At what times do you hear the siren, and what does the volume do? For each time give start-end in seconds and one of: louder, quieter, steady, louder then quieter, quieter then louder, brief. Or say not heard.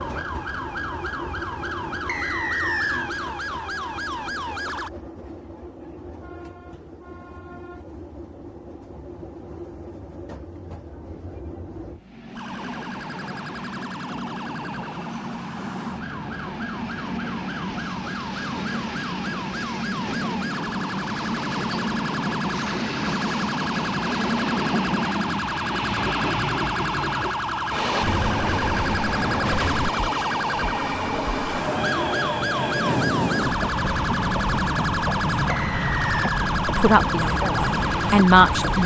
0.0-4.9 steady
12.3-38.8 louder.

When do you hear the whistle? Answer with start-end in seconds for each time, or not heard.
2.0-3.1, 35.5-36.3.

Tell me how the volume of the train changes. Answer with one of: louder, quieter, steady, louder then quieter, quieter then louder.
louder.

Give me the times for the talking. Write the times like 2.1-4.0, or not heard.
36.6-38.8.